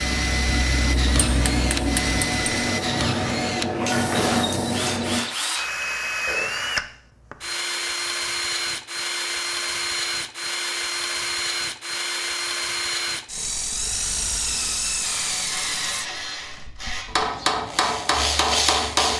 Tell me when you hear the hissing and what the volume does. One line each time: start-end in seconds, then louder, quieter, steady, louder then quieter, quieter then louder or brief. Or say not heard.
0.0-5.2 louder.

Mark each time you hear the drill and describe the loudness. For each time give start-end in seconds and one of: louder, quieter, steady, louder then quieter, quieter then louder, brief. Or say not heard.
0.0-19.1 steady.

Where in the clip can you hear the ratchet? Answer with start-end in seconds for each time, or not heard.
15.0-17.1.